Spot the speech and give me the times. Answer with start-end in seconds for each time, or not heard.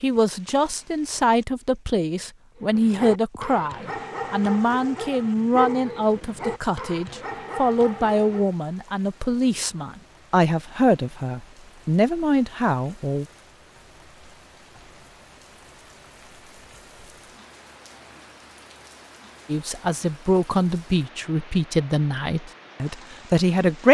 0.0-13.2, 19.4-23.8.